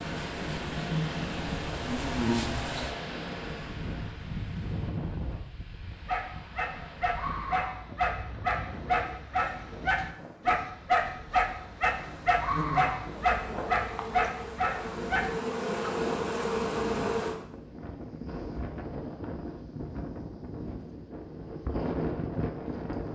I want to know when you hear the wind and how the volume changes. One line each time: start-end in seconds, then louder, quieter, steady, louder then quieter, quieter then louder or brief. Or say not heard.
0.0-23.1 quieter then louder.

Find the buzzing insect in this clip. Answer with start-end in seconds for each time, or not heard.
0.0-3.0, 11.8-17.4.